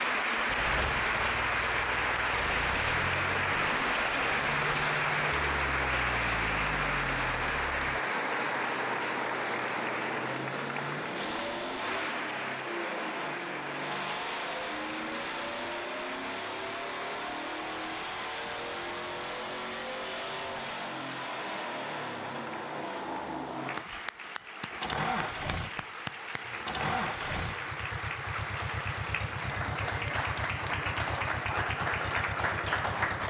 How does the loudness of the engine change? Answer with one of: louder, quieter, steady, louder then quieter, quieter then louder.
steady.